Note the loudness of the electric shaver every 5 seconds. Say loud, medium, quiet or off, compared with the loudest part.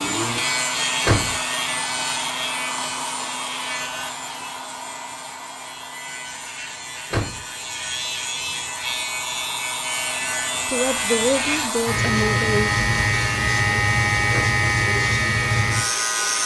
medium, medium, loud, loud.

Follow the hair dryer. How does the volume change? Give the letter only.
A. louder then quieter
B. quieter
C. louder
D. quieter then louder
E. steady
D.